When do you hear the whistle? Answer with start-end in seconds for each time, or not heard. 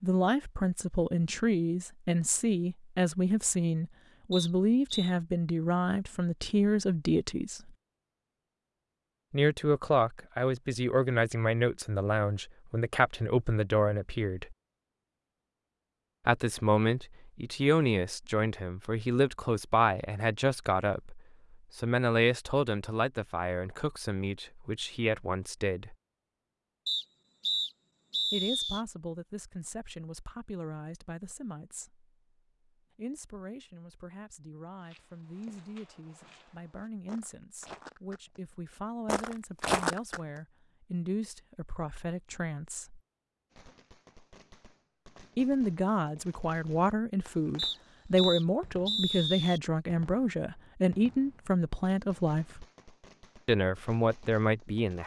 4.3-5.2, 26.9-28.8, 47.5-49.6.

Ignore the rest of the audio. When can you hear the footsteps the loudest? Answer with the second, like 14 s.
40 s.